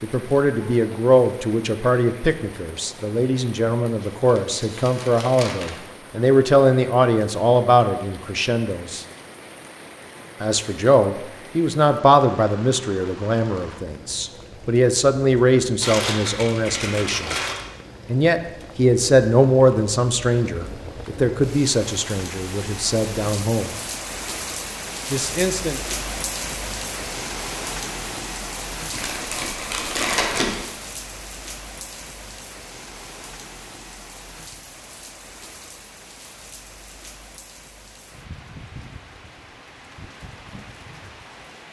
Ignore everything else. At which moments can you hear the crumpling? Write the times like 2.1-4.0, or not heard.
4.0-5.8, 15.8-17.6, 28.9-30.6.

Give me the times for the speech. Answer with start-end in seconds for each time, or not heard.
0.0-9.1, 10.4-17.4, 18.1-23.8, 25.1-25.9.